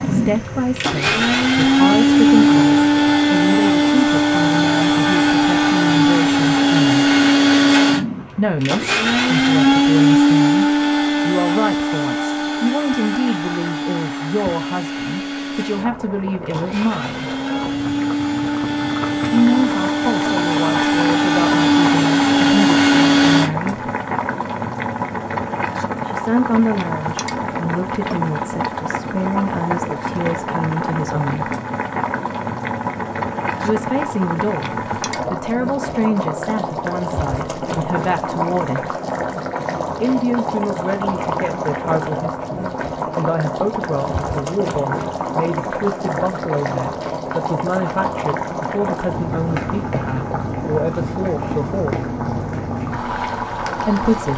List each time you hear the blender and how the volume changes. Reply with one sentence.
The blender can be heard from 0.0 to 23.5 s, getting quieter then louder.